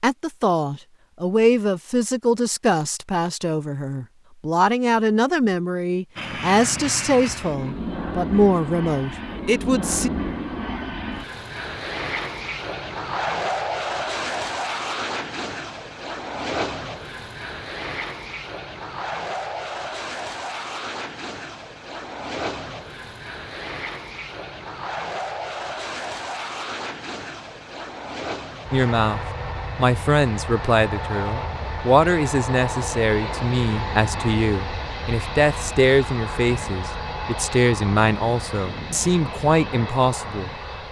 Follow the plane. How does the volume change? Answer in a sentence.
The volume of the plane stays about the same.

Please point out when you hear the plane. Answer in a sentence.
You can hear the plane from 6.2 to 40.8 s.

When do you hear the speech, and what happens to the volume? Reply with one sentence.
You can hear the speech from 0.0 to 10.1 s, at a steady volume; and from 28.7 to 40.8 s, at a steady volume.